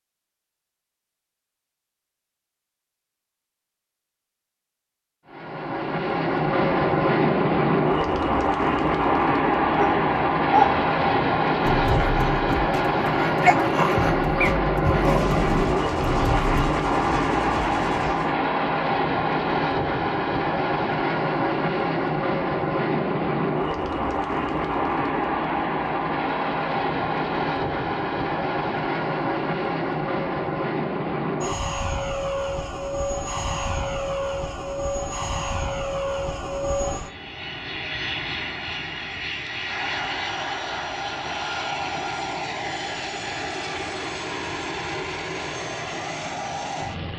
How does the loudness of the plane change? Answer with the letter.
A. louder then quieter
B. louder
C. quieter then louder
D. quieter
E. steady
D.